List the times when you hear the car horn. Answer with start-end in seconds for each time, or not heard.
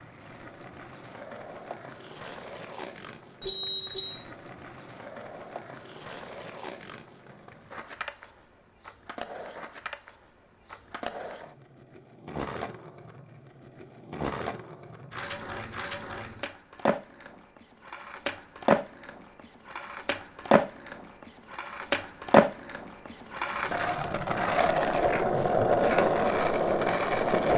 3.4-4.2.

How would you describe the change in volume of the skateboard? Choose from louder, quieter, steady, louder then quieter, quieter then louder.
louder.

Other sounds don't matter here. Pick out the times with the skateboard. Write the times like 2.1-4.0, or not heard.
0.0-27.5.